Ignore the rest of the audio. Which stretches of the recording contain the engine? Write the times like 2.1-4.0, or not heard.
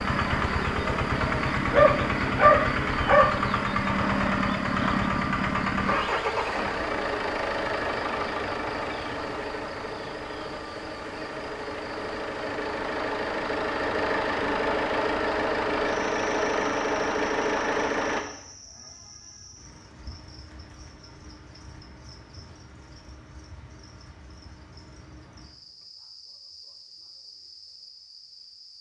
0.0-18.2.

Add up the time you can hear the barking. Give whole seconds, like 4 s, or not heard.
2 s.